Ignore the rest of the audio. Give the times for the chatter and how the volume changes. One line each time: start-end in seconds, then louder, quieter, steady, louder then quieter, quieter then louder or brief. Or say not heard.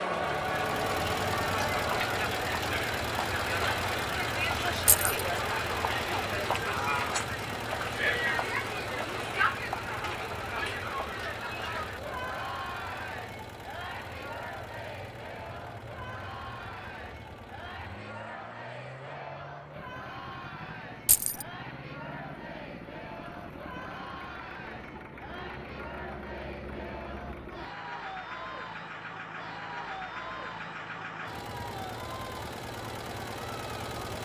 0.0-34.2 quieter.